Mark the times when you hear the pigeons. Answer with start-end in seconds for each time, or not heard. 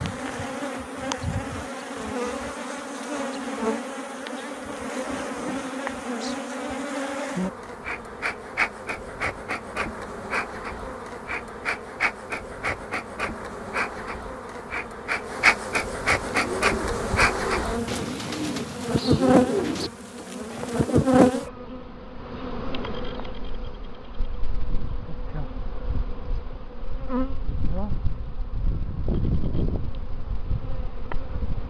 16.2-21.6.